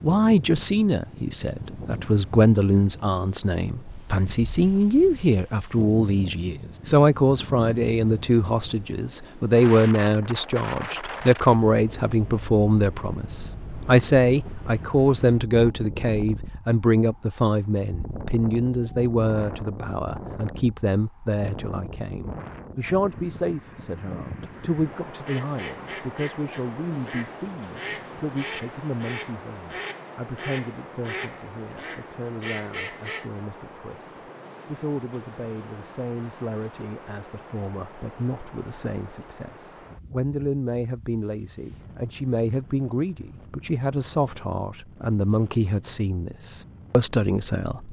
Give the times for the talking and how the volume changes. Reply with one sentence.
You can hear the talking from 0.0 to 47.8 s, getting quieter then louder.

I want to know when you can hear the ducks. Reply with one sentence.
You can hear the ducks from 25.2 to 33.3 s.